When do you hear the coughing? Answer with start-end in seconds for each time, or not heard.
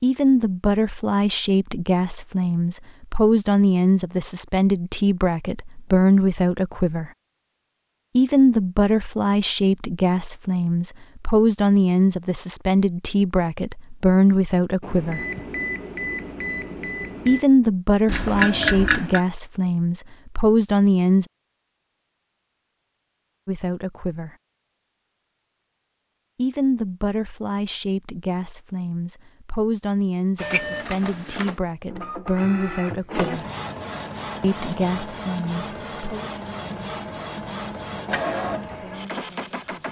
18.1-19.2.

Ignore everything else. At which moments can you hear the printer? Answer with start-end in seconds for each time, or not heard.
30.4-39.8.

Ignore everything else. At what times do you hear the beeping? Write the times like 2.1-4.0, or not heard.
14.8-17.4, 30.4-31.1.